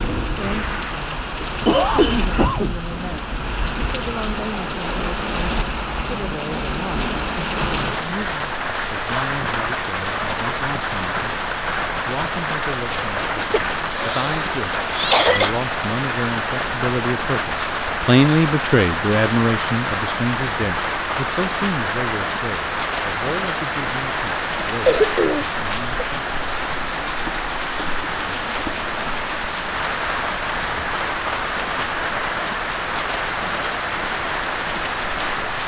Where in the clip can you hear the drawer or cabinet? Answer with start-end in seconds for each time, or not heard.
not heard.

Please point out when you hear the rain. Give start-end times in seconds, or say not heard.
0.0-35.6.